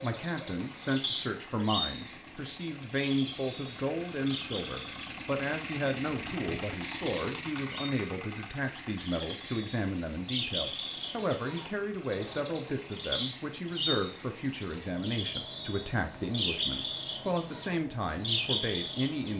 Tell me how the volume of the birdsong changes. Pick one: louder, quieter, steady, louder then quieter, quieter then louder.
quieter then louder.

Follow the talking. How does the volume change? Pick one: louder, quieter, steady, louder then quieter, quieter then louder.
steady.